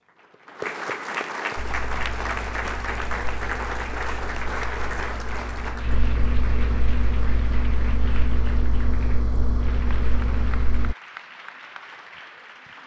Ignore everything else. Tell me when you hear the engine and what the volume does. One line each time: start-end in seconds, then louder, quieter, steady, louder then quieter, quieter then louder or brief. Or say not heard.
1.6-10.9 louder.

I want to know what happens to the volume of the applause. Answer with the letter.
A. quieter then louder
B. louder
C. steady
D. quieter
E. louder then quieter
D.